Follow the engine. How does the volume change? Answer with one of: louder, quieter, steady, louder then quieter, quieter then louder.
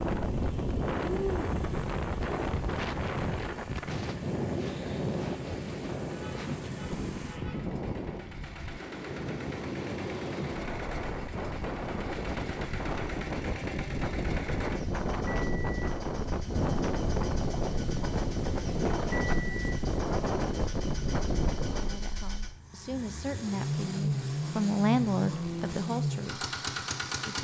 louder.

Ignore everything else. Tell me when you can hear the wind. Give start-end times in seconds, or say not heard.
0.0-22.1.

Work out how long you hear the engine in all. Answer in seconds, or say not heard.
27 s.